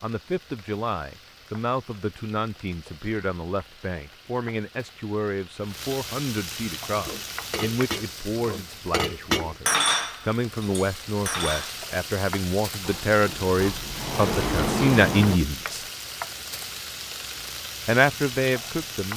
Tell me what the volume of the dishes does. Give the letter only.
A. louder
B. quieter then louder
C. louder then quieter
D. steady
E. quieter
C.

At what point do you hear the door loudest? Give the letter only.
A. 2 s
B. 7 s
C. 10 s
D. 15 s
D.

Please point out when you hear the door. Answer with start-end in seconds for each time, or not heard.
12.8-15.4.